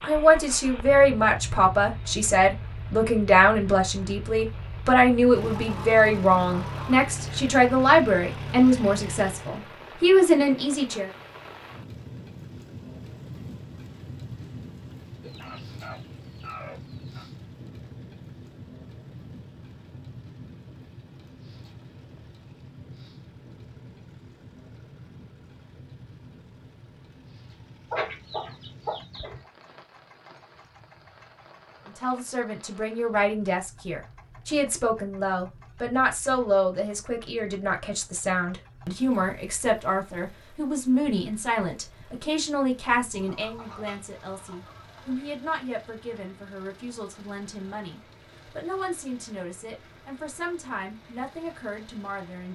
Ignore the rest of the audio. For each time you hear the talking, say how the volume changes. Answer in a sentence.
You can hear the talking from 0.0 to 11.1 s, at a steady volume; and from 31.9 to 52.5 s, getting quieter.